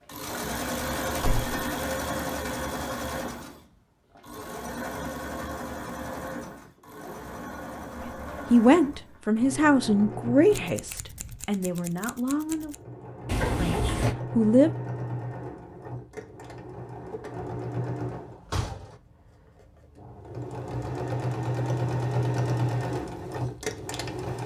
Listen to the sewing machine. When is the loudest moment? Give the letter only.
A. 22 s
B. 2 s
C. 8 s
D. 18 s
A.